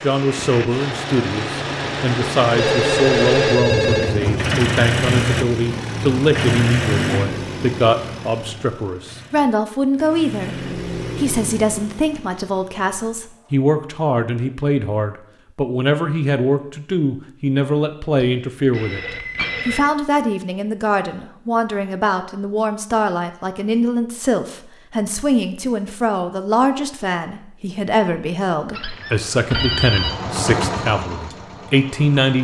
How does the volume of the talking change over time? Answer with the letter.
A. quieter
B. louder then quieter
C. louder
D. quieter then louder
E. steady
E.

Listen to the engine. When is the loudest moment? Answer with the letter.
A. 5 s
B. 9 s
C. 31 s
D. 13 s
A.